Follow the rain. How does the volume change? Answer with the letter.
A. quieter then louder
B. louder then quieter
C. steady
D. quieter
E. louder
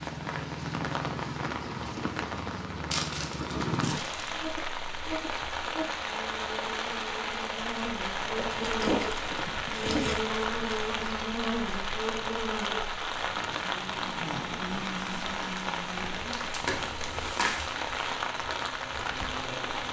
C.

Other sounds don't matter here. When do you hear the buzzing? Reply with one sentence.
You can hear the buzzing from 4.3 to 19.8 s.